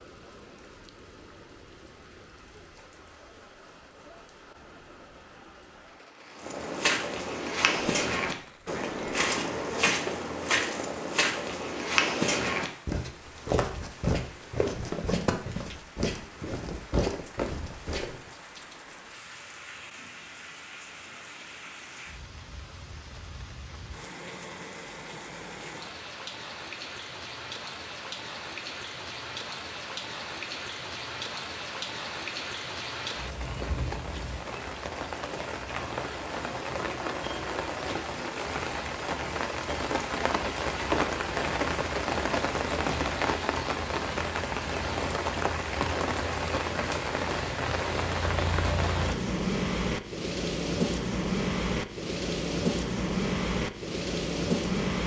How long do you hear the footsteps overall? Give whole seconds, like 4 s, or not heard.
12 s.